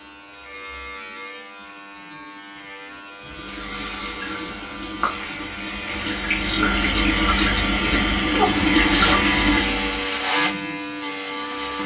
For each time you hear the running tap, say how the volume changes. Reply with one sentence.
You can hear the running tap from 3.2 to 10.1 s, getting louder.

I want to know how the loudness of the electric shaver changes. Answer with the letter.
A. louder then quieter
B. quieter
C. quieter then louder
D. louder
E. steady
D.